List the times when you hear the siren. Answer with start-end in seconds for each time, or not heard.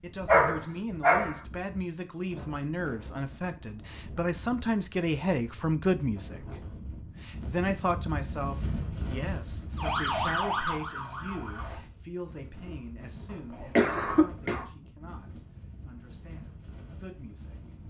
9.8-11.8.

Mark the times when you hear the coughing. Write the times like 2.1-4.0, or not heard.
13.5-14.7.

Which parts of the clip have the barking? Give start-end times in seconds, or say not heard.
0.2-1.4.